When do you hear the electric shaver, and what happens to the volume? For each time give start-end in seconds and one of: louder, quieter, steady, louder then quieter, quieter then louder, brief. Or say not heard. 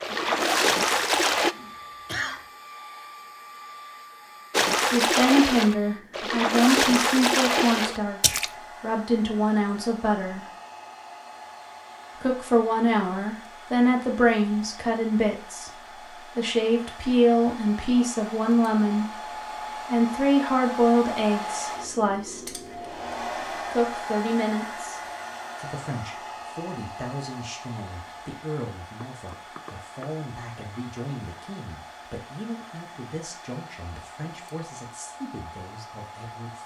not heard.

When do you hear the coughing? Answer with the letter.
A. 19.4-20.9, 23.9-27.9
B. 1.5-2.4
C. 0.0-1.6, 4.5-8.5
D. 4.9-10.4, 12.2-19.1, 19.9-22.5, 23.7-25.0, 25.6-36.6
B.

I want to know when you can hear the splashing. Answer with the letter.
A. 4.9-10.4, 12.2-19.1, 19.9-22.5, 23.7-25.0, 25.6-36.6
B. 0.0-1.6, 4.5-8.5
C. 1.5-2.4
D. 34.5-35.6
B.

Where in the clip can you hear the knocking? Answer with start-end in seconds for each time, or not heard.
29.0-30.1.